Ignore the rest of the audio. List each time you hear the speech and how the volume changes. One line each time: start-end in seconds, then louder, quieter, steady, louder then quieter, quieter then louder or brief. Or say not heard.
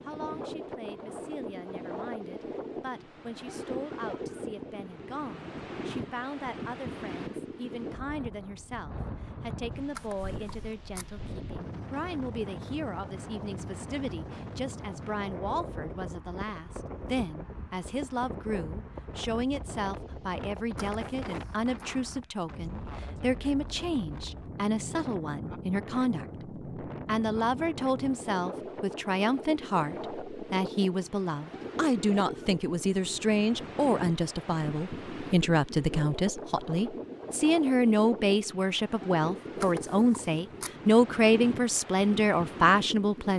0.0-43.3 louder.